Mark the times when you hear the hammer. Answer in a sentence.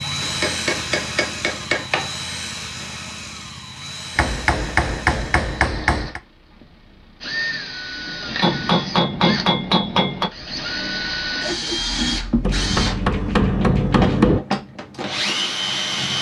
You can hear the hammer from 0.2 to 2.1 s, from 4.2 to 6.2 s, from 8.4 to 10.3 s and from 12.4 to 14.4 s.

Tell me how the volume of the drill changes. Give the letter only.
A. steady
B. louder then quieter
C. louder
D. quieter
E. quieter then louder
E.